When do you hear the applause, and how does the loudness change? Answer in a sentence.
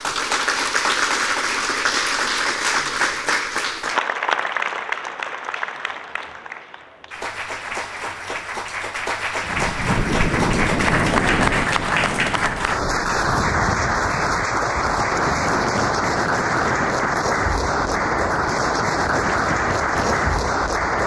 You can hear the applause from 0.0 to 21.0 s, getting quieter then louder.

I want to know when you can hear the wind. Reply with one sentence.
You can hear the wind from 9.4 to 21.0 s.